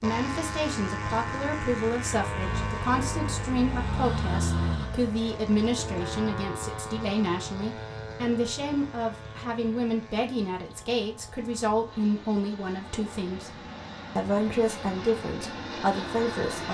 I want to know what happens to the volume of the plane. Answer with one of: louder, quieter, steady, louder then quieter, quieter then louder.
quieter then louder.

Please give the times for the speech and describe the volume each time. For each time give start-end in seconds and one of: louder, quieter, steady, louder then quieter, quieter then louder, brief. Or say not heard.
0.0-13.5 steady
14.2-16.6 brief.